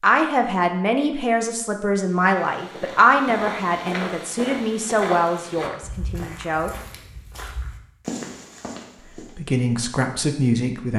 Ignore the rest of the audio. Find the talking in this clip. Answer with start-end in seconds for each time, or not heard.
0.0-6.7, 9.3-10.9.